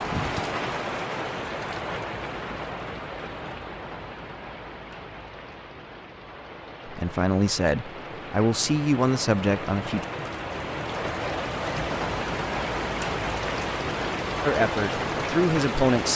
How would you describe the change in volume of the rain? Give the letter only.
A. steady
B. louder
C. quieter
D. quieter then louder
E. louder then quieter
D.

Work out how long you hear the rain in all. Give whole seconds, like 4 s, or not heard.
16 s.